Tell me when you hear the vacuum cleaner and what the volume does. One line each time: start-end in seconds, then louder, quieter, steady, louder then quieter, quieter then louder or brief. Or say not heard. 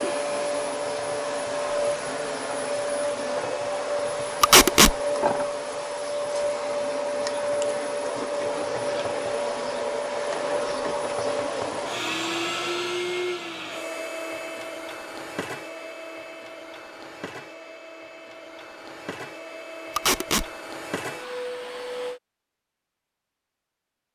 0.0-22.2 quieter.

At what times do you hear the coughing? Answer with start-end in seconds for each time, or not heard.
not heard.